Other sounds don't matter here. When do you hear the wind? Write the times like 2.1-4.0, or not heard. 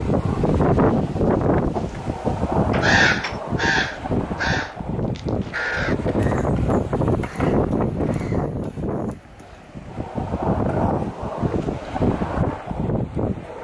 0.0-13.5.